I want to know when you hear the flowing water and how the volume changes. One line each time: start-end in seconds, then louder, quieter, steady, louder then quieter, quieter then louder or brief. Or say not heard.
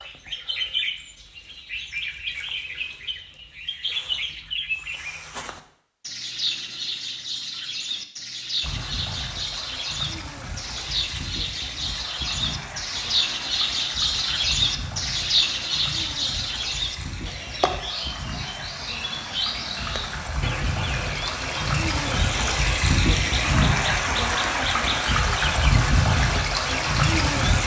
8.6-27.6 louder.